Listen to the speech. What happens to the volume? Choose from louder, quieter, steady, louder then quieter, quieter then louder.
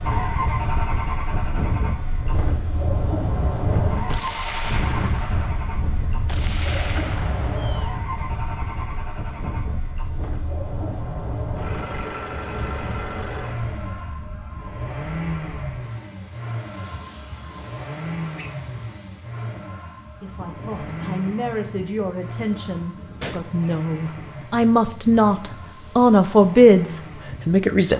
louder.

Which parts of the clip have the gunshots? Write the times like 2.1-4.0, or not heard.
4.0-8.1, 23.2-23.6.